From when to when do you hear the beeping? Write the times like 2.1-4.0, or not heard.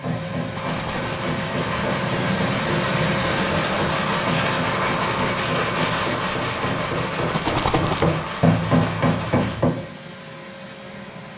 not heard.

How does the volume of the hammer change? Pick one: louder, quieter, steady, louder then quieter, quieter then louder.
louder.